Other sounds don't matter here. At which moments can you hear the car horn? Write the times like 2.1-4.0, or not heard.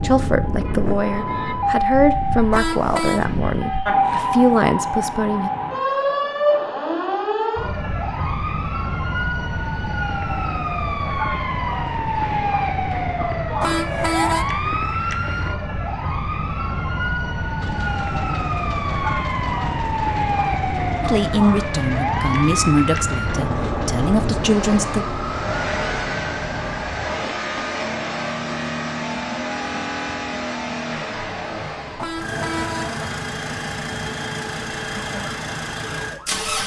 2.5-3.2, 13.6-14.4, 31.9-33.1.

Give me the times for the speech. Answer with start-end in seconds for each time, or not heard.
0.0-5.5, 21.0-25.1.